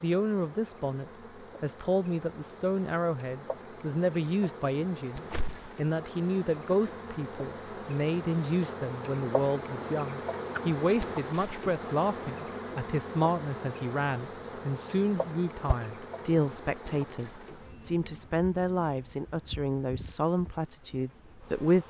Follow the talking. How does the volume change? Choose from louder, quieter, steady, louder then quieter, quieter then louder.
steady.